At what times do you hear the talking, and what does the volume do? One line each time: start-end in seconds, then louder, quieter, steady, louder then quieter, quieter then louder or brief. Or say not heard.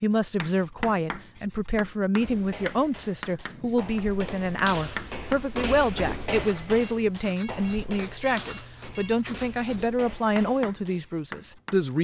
0.0-11.9 steady.